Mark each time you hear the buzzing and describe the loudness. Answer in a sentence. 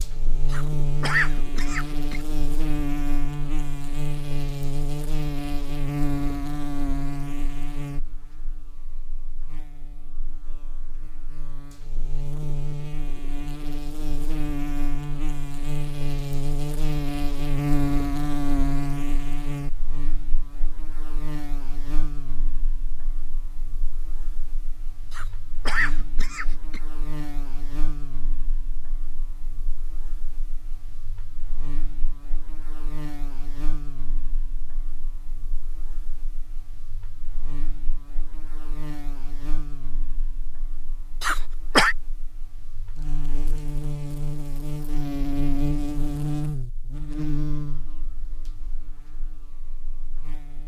The buzzing can be heard from 0.0 to 50.6 s, getting quieter then louder.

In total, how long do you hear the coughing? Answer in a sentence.
You can hear the coughing for 4 seconds altogether.